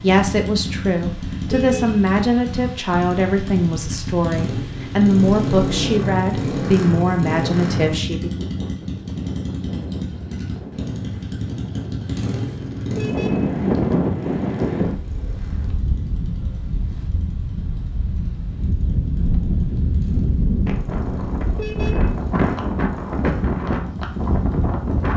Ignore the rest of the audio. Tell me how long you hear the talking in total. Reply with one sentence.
You can hear the talking for 8 seconds altogether.